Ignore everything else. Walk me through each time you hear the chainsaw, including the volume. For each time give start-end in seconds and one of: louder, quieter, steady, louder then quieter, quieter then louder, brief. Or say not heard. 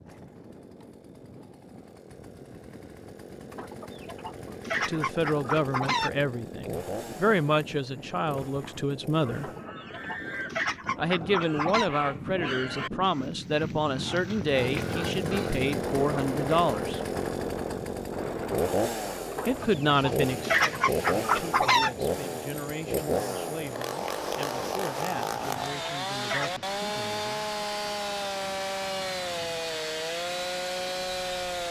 0.0-9.7 louder then quieter
14.4-31.6 steady.